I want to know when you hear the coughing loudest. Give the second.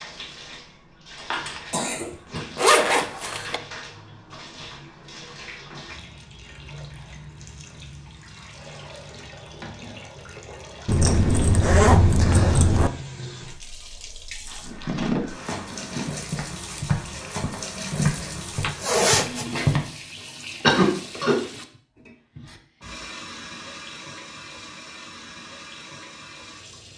21 s.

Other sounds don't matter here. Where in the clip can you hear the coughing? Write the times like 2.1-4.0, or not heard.
1.1-2.8, 20.6-21.4.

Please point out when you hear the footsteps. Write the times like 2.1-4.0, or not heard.
14.4-19.8.